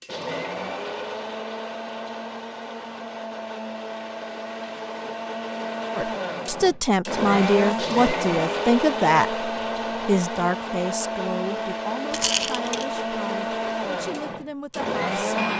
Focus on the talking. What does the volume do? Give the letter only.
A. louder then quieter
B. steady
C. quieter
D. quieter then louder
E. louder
C.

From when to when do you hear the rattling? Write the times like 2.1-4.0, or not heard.
12.1-12.8.